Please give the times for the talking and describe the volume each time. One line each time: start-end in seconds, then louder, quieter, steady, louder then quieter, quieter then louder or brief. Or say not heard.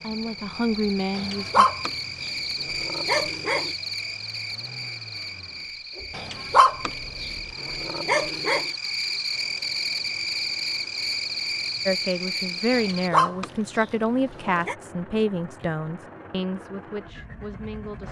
0.0-1.6 brief
11.8-18.0 quieter.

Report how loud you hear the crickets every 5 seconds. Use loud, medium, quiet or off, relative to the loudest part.
loud, loud, loud, off.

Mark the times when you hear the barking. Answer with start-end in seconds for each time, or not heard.
1.1-3.7, 6.2-8.7, 12.7-14.8.